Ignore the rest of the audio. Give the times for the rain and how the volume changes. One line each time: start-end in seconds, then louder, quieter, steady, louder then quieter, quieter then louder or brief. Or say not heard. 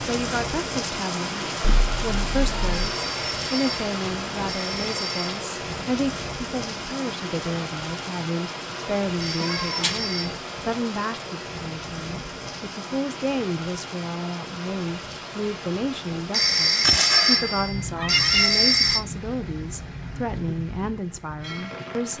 0.0-22.1 quieter.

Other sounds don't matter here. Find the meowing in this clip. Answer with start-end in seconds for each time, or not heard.
1.6-3.0, 9.4-10.0, 16.8-18.6.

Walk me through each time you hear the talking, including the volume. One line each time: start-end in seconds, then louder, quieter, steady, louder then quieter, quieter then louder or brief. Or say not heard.
0.0-22.1 steady.